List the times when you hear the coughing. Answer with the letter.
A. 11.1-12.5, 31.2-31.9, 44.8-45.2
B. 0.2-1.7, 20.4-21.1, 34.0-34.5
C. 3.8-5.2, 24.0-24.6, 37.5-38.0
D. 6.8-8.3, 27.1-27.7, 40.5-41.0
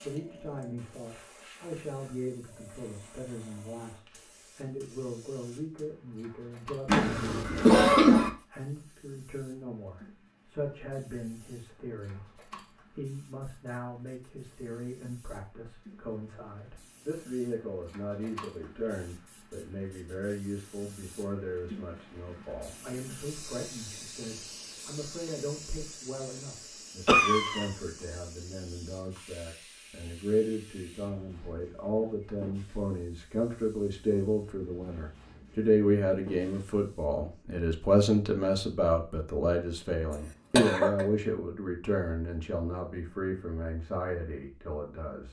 D.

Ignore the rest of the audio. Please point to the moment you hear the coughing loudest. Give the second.
8 s.